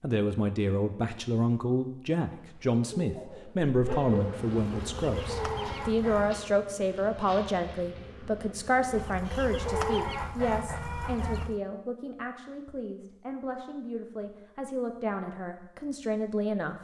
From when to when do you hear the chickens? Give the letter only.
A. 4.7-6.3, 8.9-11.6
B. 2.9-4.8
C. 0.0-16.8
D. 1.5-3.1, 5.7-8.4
A.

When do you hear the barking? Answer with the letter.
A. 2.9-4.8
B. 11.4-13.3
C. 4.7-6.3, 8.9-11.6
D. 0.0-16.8
A.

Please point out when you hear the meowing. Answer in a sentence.
You can't hear the meowing here.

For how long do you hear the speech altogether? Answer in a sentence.
The speech can be heard for 17 seconds in total.